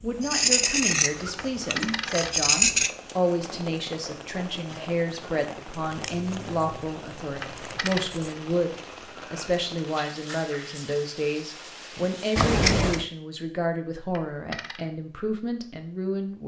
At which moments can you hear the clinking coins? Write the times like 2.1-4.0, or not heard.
1.4-2.9, 7.4-8.2, 14.2-14.8.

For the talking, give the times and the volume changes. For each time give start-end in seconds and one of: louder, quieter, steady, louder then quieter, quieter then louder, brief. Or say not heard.
0.0-16.4 steady.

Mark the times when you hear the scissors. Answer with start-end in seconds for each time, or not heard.
0.2-2.9, 5.9-8.3, 12.3-13.1.